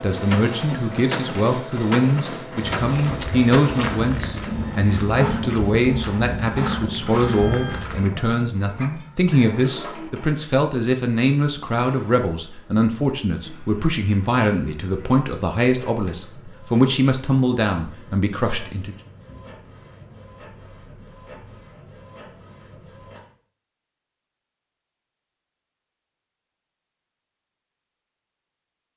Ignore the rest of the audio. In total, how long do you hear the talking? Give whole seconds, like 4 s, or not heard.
19 s.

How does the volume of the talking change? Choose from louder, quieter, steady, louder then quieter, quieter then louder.
steady.